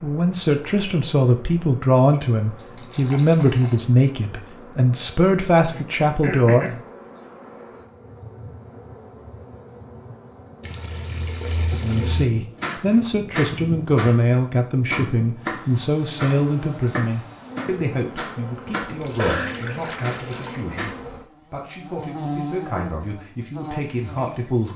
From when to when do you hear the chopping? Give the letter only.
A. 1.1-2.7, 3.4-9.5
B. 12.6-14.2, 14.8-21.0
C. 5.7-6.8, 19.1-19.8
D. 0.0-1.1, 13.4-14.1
B.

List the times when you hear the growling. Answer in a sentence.
You can't hear the growling here.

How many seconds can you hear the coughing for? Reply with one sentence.
You can hear the coughing for 2 seconds altogether.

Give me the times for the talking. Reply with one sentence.
You can hear the talking from 0.0 to 6.7 s and from 11.8 to 24.7 s.